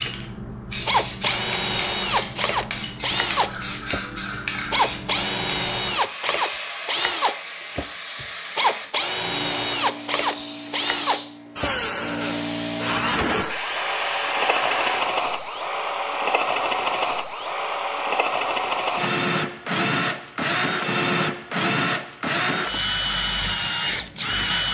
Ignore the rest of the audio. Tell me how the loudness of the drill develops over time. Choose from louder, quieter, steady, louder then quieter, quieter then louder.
steady.